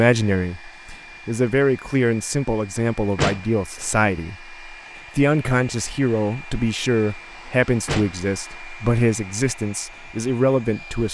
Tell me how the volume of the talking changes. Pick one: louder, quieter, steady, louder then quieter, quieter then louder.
steady.